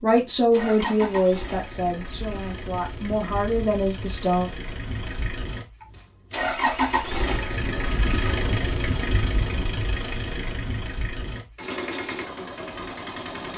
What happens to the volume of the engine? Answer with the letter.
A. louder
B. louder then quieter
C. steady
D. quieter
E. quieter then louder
B.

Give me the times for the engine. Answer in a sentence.
You can hear the engine from 0.1 to 13.5 s.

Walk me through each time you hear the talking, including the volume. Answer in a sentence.
You can hear the talking from 0.0 to 4.5 s, getting quieter then louder.